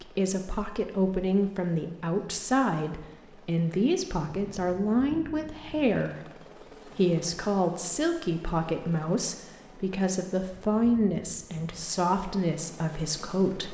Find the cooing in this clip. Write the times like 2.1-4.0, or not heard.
not heard.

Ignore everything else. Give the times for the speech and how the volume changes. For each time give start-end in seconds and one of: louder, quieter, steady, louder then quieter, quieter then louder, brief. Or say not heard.
0.0-13.6 steady.